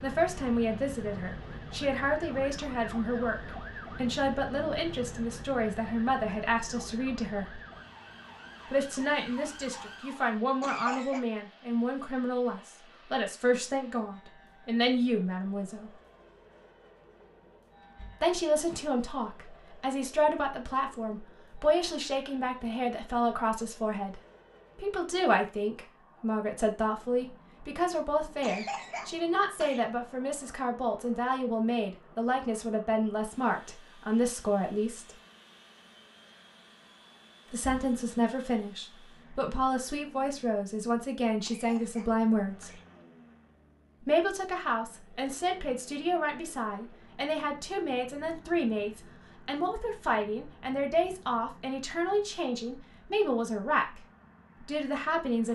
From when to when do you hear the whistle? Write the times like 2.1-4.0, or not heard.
not heard.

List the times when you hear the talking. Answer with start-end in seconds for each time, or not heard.
0.0-7.6, 8.7-15.9, 18.2-35.1, 37.5-42.7, 44.0-55.5.